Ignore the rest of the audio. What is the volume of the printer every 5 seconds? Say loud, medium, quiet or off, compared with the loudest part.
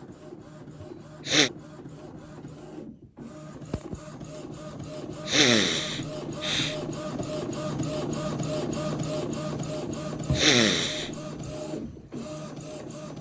medium, loud, loud.